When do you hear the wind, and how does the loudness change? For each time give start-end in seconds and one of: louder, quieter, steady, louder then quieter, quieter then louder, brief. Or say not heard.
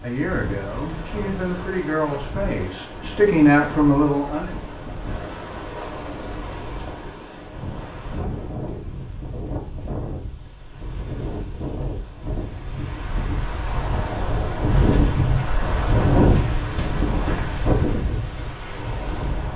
0.0-19.5 louder.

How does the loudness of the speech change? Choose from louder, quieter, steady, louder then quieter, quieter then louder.
louder.